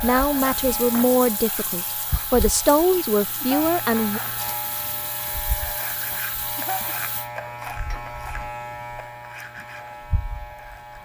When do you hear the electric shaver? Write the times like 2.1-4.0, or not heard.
0.0-11.0.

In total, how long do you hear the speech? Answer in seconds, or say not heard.
4 s.